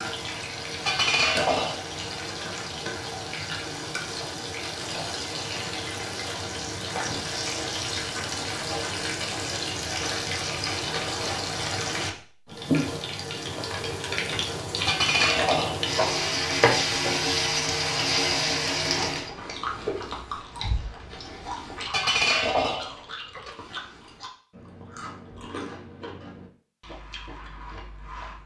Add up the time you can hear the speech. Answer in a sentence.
You can't hear the speech here.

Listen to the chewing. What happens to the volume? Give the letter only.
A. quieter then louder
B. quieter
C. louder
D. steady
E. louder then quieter
B.